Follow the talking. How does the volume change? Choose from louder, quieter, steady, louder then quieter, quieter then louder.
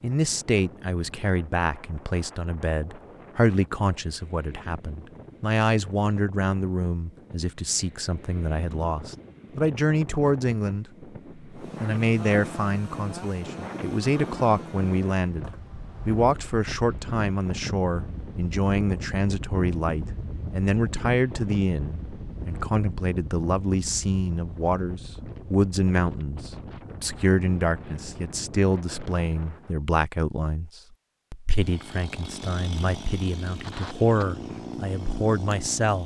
steady.